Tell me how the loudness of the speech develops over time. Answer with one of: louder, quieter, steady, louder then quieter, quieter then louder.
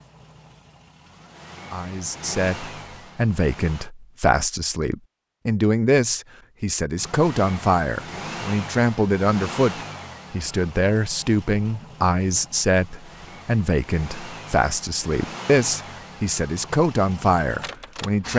steady.